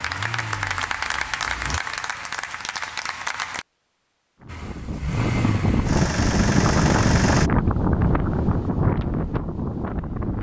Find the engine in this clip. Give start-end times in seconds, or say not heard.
0.0-1.8, 4.5-7.5.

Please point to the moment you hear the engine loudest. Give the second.
7 s.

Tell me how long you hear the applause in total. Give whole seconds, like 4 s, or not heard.
4 s.